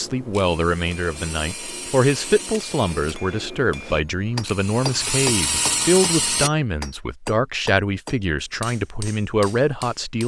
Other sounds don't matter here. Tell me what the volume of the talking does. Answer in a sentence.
The volume of the talking stays about the same.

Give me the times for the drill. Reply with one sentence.
The drill can be heard from 0.1 to 6.5 s.